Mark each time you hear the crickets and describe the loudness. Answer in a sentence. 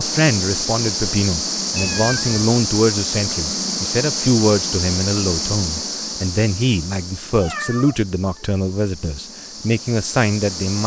The crickets can be heard from 0.0 to 10.8 s, getting quieter.